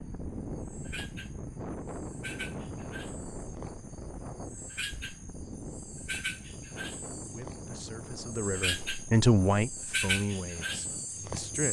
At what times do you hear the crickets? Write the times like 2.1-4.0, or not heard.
0.0-11.6.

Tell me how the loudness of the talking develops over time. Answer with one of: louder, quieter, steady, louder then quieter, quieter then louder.
louder then quieter.